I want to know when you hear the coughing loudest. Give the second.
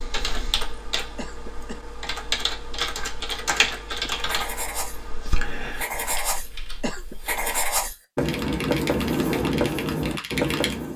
7 s.